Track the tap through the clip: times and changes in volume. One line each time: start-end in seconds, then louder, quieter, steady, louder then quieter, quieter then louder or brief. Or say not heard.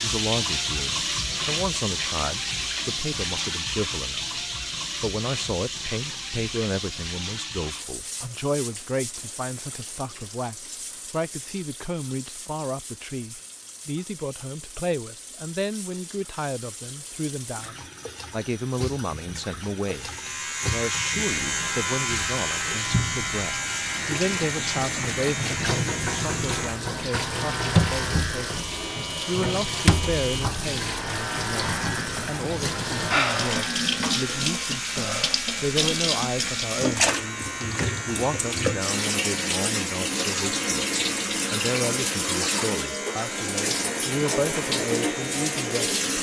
0.0-46.1 quieter then louder.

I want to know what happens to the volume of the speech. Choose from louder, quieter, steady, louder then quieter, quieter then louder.
steady.